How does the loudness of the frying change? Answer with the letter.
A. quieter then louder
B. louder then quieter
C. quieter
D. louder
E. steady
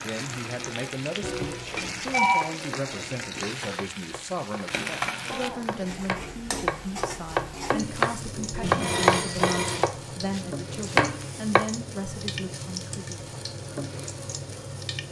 E.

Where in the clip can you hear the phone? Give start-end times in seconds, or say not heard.
1.2-2.5, 8.6-9.8.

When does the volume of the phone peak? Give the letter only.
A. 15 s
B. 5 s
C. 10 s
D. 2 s
D.